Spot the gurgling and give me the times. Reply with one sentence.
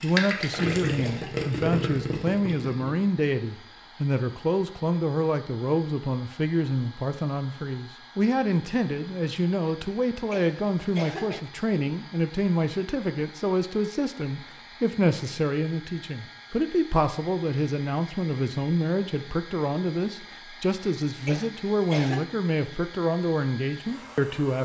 The gurgling can be heard from 0.0 to 3.0 s.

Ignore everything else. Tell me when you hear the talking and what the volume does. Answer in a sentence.
You can hear the talking from 0.0 to 24.6 s, at a steady volume.